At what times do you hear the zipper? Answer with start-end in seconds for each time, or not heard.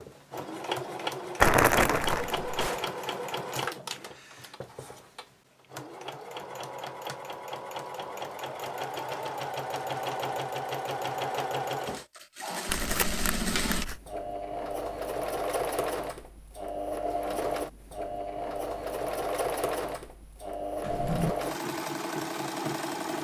not heard.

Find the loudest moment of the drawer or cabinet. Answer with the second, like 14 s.
21 s.